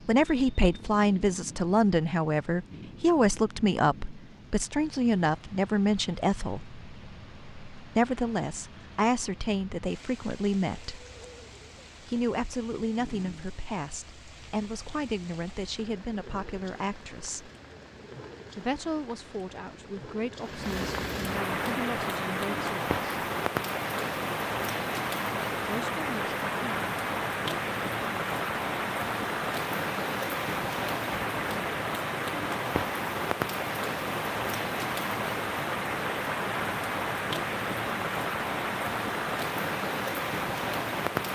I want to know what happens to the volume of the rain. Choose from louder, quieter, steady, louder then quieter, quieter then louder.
louder.